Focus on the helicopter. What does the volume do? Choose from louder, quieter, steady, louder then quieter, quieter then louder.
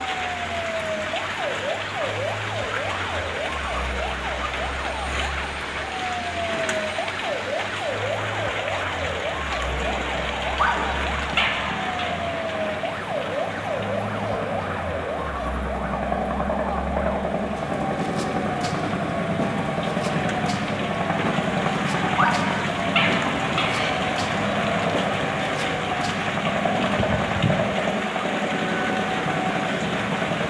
louder.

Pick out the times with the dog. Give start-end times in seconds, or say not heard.
10.4-12.0, 22.1-23.9.